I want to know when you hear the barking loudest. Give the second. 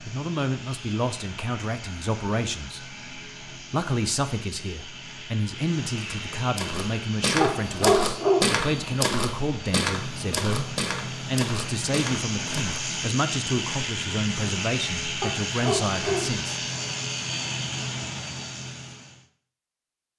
8 s.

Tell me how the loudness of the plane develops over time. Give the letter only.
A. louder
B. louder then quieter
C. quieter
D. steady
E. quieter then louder
A.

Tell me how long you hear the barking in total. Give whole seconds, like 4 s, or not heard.
2 s.